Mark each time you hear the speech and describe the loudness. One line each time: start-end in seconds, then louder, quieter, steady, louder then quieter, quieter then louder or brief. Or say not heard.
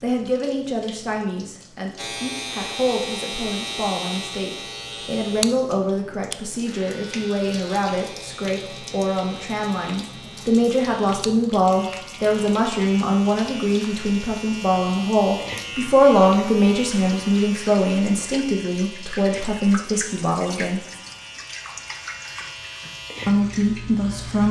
0.0-20.8 louder
23.2-24.4 brief.